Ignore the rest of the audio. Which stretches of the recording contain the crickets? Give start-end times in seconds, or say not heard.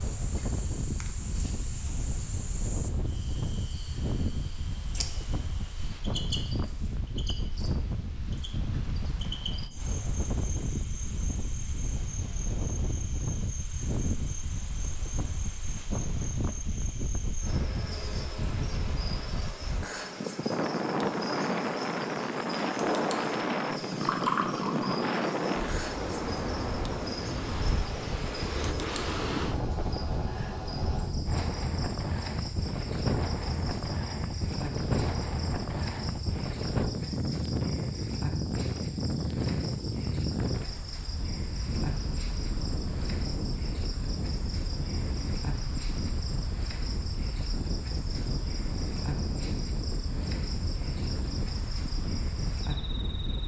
0.0-53.4.